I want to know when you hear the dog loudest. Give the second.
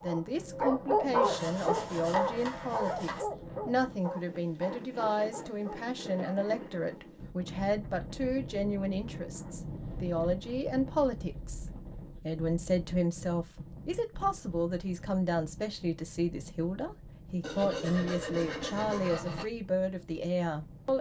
1 s.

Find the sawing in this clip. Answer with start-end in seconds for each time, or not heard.
1.2-3.2, 17.4-19.4.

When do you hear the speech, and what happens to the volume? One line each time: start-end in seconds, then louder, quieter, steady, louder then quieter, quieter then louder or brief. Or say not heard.
0.0-20.9 steady.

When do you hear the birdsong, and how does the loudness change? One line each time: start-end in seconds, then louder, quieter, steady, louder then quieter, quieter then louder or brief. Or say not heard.
not heard.